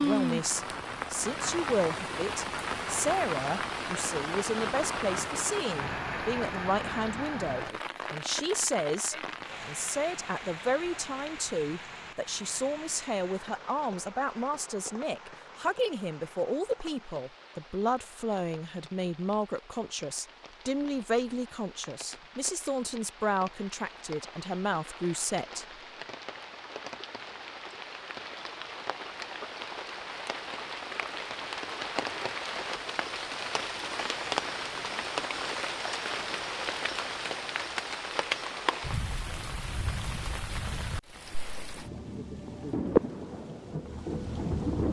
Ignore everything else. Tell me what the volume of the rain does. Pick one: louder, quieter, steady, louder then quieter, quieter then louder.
quieter then louder.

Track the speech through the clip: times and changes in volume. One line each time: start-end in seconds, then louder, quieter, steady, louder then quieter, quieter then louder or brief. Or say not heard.
0.0-25.6 steady.